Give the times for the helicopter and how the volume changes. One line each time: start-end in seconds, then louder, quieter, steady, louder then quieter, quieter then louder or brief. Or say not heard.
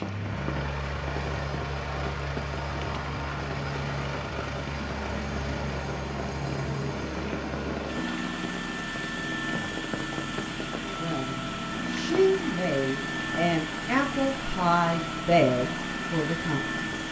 0.0-17.0 steady.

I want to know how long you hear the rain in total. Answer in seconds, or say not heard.
17 s.